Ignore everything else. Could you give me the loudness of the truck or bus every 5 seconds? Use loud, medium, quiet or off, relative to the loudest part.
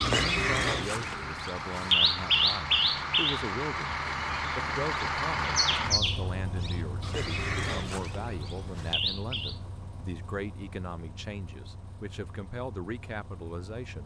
loud, loud, quiet.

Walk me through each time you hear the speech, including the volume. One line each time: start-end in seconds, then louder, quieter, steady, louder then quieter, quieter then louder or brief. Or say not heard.
0.1-14.0 steady.